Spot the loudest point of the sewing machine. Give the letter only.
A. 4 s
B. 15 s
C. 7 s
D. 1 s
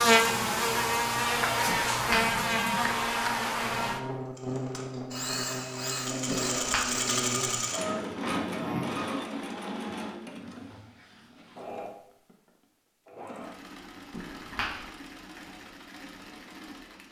C.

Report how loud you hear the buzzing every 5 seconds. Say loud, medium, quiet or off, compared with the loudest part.
loud, medium, off, off.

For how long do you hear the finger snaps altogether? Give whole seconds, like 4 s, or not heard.
2 s.